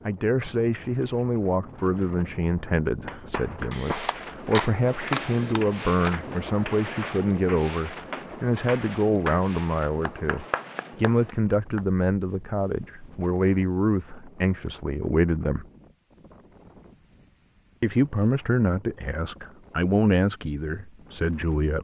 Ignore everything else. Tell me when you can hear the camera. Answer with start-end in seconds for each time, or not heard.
3.7-6.1.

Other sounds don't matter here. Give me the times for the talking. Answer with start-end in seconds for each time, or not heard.
0.1-15.7, 17.8-21.7.